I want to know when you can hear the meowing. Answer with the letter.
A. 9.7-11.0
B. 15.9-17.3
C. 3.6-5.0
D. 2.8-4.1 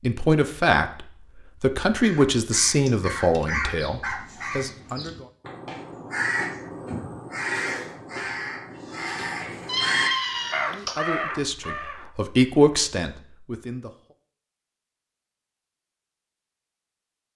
A.